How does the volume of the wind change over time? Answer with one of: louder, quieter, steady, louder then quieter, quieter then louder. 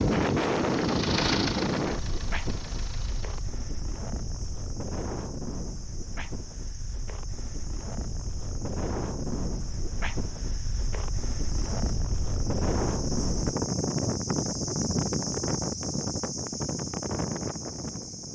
quieter then louder.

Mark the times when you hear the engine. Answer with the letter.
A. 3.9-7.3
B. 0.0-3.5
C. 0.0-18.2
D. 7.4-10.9
B.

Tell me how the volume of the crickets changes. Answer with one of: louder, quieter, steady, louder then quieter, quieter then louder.
louder.